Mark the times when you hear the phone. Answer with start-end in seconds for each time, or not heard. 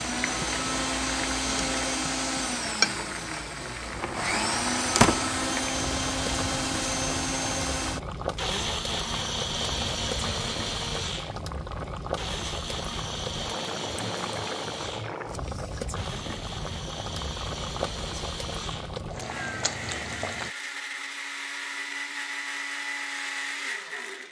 not heard.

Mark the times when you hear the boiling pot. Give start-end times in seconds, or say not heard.
0.0-20.6.